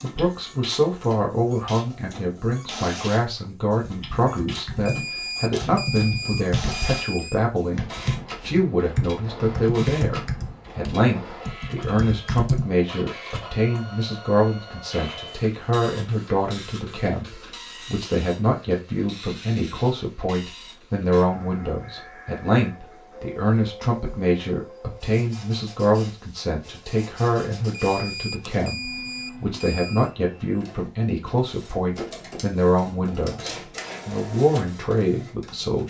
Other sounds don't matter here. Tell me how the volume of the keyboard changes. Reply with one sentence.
The volume of the keyboard goes up.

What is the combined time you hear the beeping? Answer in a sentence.
You can hear the beeping for 5 seconds altogether.